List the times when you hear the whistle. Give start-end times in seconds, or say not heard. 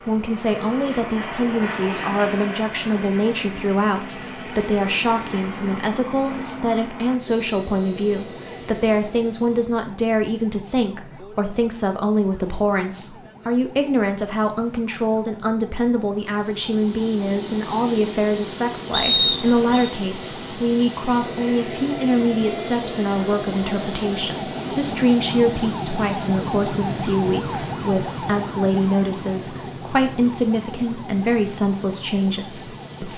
18.9-19.9.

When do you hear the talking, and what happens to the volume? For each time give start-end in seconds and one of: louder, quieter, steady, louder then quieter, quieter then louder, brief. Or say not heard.
0.1-33.1 steady.